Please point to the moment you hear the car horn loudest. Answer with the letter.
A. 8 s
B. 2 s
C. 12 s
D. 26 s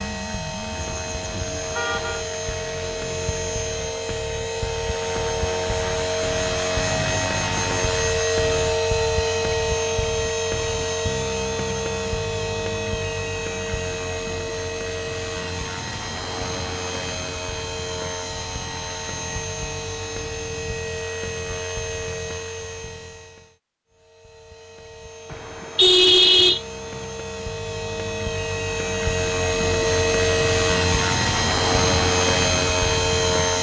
D.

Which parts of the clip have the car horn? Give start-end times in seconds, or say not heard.
1.0-2.2, 25.3-27.1.